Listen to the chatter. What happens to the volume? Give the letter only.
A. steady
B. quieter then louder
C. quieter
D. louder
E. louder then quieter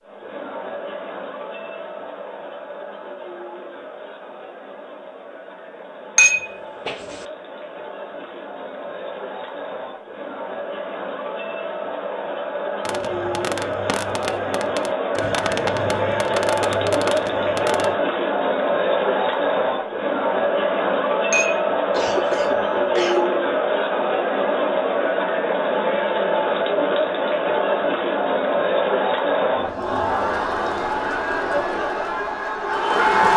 D.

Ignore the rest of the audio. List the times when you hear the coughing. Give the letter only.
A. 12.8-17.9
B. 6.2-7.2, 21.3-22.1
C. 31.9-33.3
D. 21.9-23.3
D.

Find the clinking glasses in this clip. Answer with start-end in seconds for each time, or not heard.
6.2-7.2, 21.3-22.1.